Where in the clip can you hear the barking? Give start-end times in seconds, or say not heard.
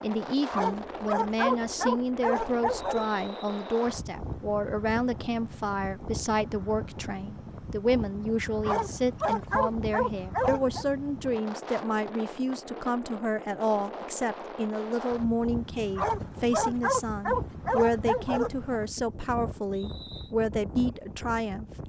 0.5-3.0, 8.7-10.8, 15.9-18.7.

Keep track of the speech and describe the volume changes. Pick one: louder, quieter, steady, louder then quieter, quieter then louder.
steady.